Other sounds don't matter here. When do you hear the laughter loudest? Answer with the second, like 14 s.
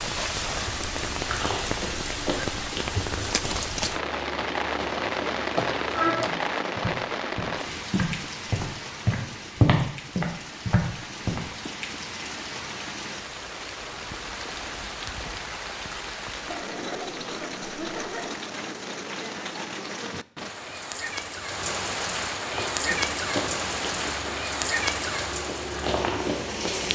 6 s.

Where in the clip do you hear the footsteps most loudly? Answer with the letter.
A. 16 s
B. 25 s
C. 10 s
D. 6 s
C.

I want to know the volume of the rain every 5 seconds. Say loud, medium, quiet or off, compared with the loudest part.
loud, loud, medium, medium, loud, loud.